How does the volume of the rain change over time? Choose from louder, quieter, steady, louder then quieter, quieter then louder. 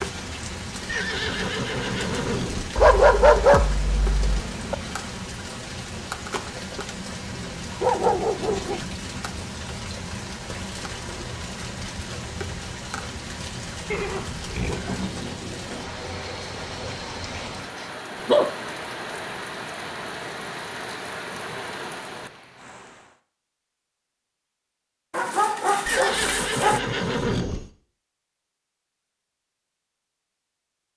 steady.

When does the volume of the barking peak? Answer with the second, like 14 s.
3 s.